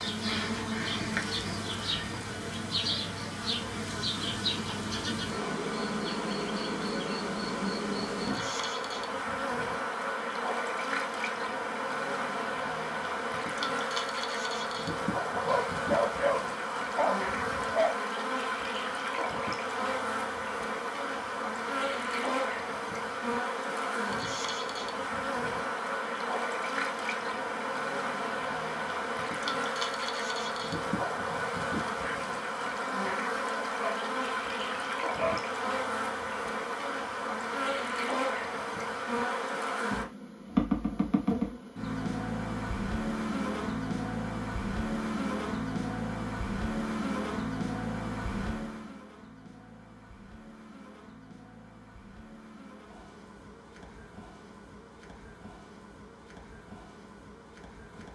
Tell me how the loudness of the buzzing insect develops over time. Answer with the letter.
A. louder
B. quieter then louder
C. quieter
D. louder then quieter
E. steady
C.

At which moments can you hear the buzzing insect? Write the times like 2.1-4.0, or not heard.
0.0-58.1.